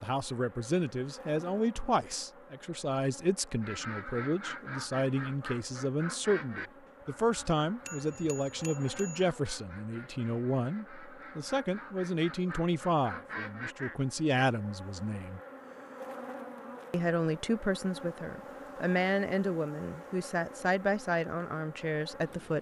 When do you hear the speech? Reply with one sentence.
The speech can be heard from 0.0 to 15.4 s and from 16.9 to 22.5 s.